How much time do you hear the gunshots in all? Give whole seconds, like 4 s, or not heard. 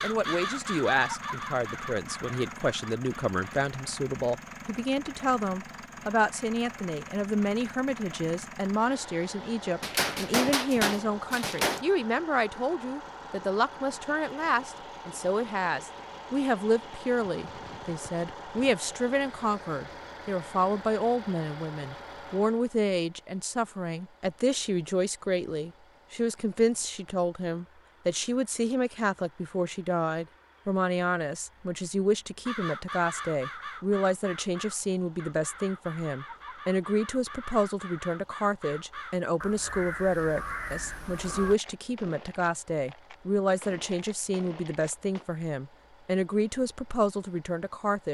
8 s.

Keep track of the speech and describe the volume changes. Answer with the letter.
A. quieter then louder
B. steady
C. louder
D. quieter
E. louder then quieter
B.